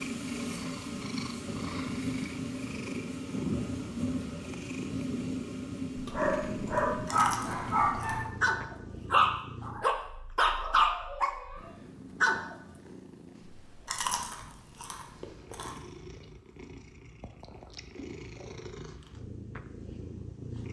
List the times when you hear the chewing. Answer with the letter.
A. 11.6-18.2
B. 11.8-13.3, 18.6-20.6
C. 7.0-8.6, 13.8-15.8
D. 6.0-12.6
C.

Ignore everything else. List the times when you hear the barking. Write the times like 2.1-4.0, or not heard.
6.0-12.6.